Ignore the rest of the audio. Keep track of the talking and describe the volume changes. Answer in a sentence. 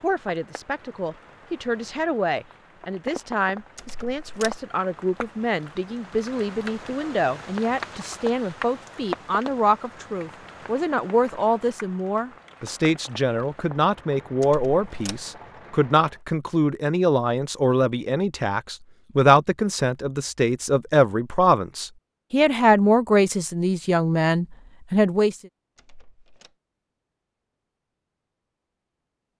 The loudness of the talking goes up.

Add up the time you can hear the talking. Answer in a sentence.
The talking can be heard for 25 seconds in total.